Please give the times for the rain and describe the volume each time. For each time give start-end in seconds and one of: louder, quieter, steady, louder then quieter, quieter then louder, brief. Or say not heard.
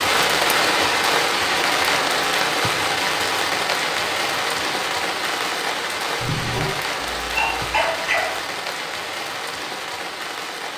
0.0-10.7 quieter.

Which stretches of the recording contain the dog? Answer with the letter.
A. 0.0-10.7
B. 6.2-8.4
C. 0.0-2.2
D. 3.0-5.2
B.